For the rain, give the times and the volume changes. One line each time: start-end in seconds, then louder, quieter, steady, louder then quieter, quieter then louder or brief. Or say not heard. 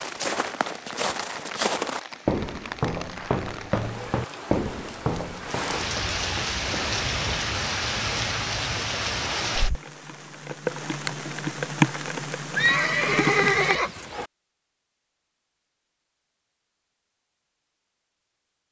0.0-13.8 louder.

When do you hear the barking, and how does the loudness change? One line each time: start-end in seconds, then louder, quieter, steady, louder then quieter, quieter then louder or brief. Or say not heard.
not heard.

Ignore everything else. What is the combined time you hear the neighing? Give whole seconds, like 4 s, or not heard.
2 s.